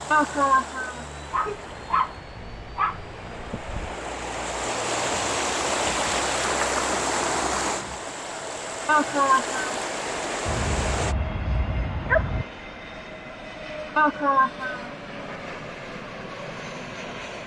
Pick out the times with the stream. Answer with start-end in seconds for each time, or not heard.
0.0-11.2.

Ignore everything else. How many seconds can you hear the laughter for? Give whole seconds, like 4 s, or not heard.
3 s.